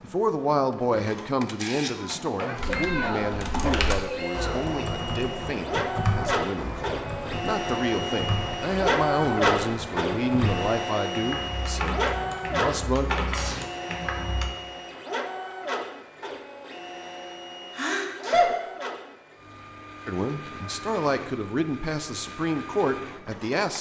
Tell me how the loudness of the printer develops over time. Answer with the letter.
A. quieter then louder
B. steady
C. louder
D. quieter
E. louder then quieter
E.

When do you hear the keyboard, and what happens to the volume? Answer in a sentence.
You can hear the keyboard from 2.5 to 14.6 s, at a steady volume.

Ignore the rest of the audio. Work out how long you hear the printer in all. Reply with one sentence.
You can hear the printer for 24 seconds altogether.